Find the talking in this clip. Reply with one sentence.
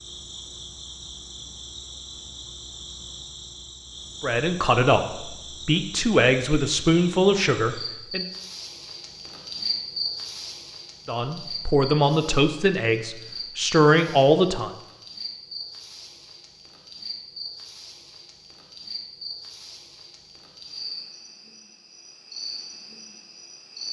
You can hear the talking from 4.2 to 8.2 s and from 11.1 to 14.7 s.